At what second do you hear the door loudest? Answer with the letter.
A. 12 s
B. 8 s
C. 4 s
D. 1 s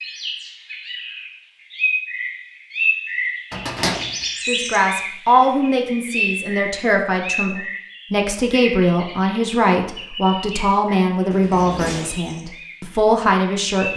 C.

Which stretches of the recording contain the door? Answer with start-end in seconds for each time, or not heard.
3.5-4.2, 11.3-12.2.